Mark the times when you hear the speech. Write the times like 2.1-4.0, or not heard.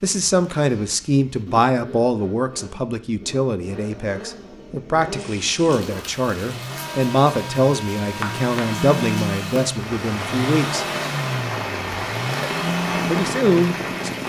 0.0-10.8, 12.4-14.2.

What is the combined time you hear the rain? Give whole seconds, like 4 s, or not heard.
9 s.